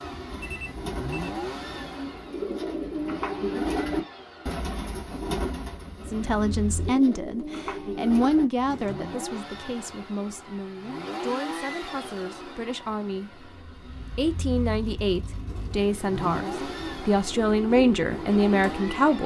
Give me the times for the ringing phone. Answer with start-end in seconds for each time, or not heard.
0.4-1.3.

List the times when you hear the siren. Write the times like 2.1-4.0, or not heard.
not heard.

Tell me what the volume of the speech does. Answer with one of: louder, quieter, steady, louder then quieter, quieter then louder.
quieter then louder.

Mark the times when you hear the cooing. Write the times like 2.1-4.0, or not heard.
0.2-8.9, 15.4-19.2.